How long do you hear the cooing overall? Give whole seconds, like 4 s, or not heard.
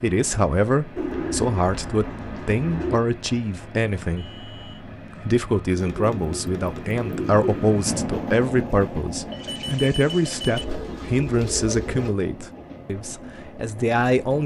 5 s.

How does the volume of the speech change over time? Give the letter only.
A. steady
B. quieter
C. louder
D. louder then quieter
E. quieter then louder
A.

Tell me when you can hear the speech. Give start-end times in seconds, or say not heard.
0.0-4.3, 5.2-14.4.